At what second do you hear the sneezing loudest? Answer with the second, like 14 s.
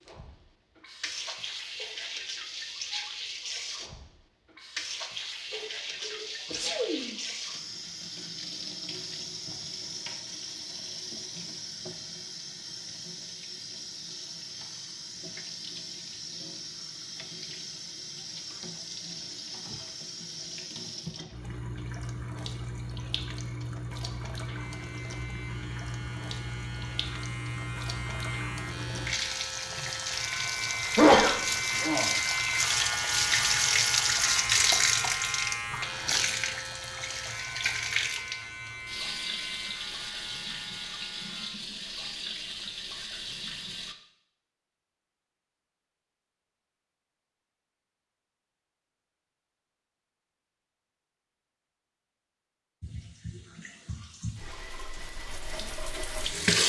31 s.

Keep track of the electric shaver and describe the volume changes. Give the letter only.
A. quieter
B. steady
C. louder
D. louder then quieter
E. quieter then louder
D.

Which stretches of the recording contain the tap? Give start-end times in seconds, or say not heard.
0.1-44.0, 52.8-56.6.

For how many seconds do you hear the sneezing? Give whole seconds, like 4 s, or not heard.
3 s.